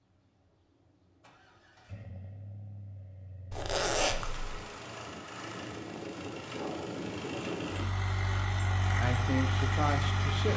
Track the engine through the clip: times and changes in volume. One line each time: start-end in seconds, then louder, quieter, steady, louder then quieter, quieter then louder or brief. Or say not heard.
0.0-10.5 louder.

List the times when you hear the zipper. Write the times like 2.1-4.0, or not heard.
3.5-4.7.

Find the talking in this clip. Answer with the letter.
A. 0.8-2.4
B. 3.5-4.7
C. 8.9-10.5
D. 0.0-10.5
C.